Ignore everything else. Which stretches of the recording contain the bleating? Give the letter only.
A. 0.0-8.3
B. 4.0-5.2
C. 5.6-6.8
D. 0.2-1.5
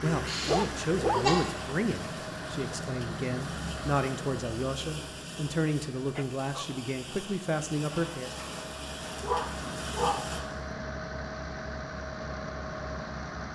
D.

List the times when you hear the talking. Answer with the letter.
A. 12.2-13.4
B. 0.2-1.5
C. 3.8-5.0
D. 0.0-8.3
D.